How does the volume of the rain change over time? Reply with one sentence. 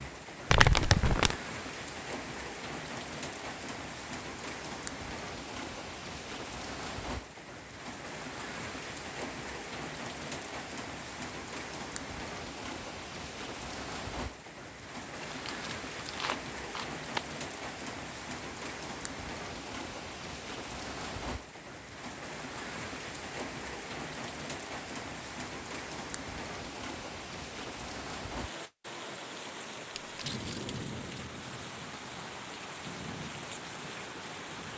The volume of the rain stays about the same.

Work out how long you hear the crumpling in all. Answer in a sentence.
You can hear the crumpling for 4 seconds altogether.